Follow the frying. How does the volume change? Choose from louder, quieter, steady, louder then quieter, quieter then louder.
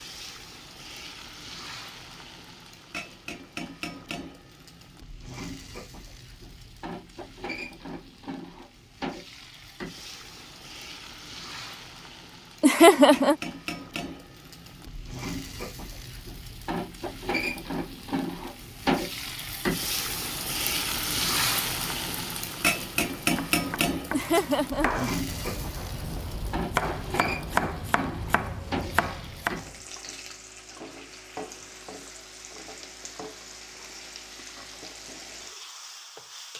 louder then quieter.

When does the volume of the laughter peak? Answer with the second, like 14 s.
13 s.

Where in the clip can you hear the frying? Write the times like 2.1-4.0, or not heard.
0.0-36.5.